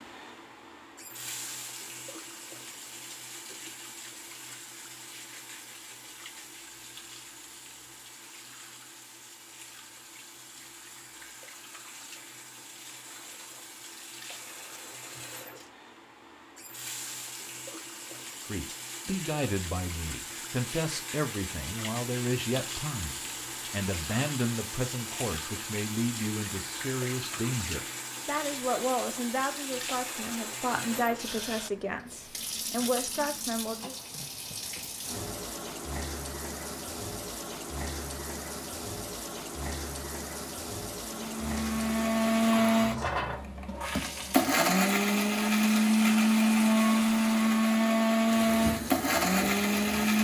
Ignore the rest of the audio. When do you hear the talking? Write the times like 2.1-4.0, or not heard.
18.4-34.0.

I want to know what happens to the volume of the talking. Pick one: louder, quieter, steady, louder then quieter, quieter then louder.
steady.